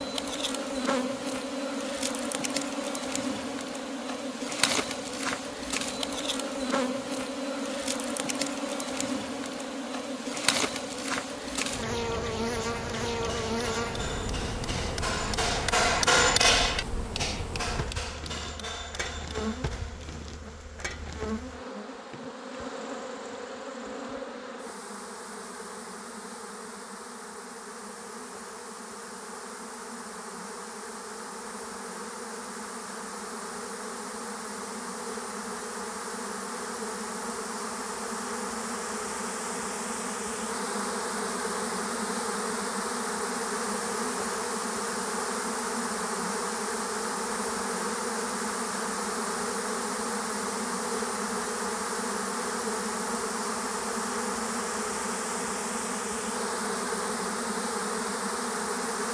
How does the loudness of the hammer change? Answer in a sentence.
The loudness of the hammer goes up, then down.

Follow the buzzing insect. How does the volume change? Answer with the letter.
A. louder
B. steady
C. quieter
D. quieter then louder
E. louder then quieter
D.